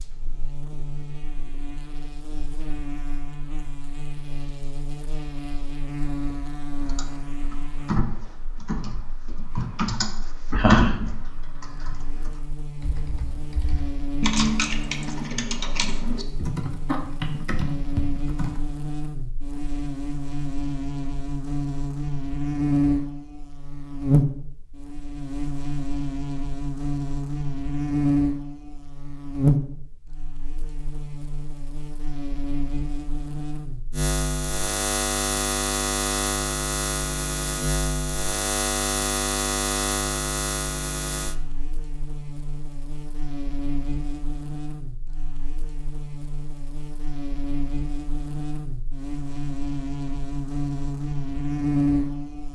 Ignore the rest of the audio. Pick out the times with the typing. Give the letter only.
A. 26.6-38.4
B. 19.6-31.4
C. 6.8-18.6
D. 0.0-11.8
C.